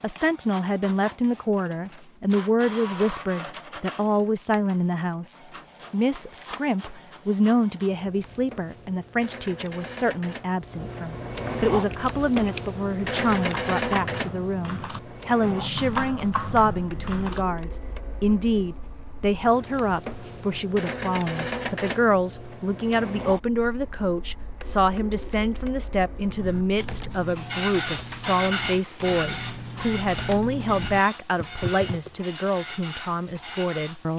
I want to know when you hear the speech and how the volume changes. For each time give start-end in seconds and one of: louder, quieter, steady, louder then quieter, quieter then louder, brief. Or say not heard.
0.0-34.1 steady.